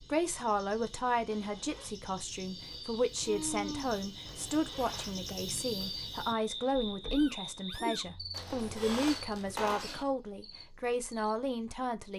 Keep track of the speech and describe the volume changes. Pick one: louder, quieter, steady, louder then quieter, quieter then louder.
steady.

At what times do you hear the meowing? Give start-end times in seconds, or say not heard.
3.2-4.0, 7.1-8.1.